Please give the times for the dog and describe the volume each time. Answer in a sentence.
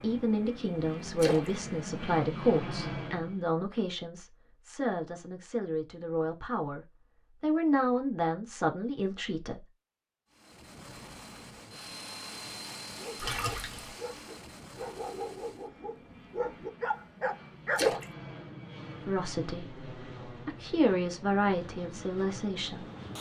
The dog can be heard from 12.9 to 17.9 s, getting louder.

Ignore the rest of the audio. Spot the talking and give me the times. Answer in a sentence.
The talking can be heard from 0.0 to 9.7 s and from 19.1 to 22.9 s.